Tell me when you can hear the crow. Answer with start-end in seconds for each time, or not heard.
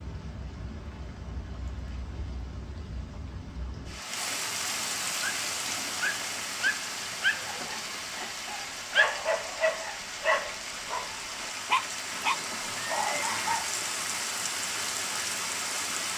not heard.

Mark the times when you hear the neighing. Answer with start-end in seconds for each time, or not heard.
12.1-13.6.